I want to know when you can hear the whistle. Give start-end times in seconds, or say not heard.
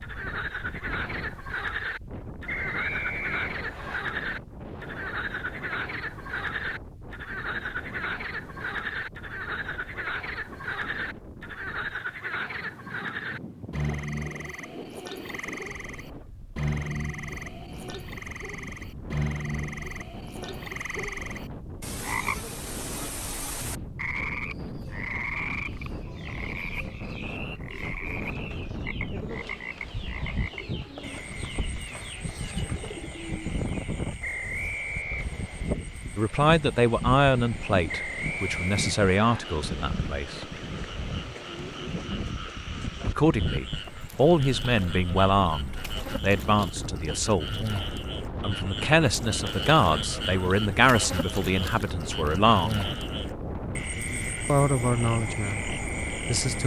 2.5-4.0, 34.2-35.2, 37.9-39.4.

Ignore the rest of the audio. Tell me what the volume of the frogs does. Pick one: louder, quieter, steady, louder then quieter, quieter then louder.
quieter then louder.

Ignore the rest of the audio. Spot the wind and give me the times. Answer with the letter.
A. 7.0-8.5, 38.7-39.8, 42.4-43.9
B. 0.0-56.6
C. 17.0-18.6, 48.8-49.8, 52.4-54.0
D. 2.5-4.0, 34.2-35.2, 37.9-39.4
B.